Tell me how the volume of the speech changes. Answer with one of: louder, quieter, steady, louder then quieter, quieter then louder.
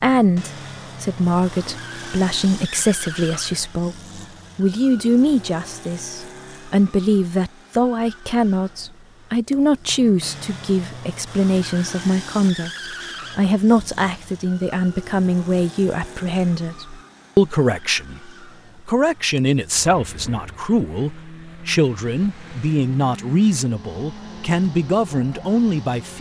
steady.